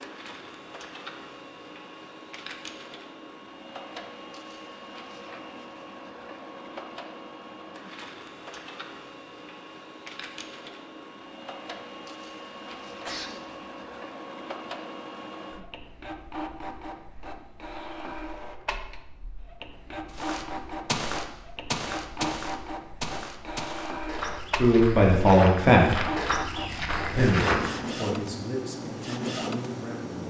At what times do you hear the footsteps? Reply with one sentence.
The footsteps can be heard from 20.1 to 27.9 s.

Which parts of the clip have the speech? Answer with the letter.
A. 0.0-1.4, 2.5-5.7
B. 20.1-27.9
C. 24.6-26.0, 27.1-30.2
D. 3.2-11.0
C.